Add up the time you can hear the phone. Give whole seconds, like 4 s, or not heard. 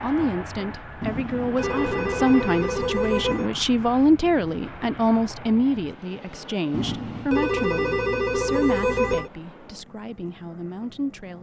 5 s.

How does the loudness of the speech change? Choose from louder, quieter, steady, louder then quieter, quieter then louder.
quieter.